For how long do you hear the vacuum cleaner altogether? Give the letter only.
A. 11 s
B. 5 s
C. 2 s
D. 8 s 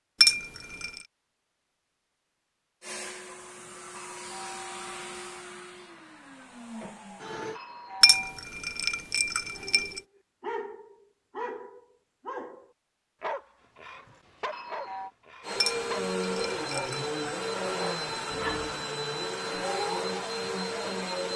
A.